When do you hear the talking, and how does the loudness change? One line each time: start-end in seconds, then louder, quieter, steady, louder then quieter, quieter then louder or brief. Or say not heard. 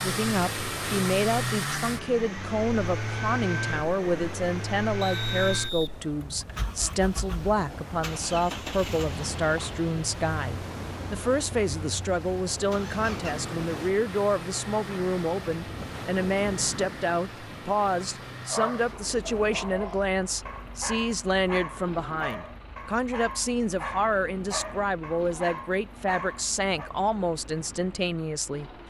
0.0-28.7 steady.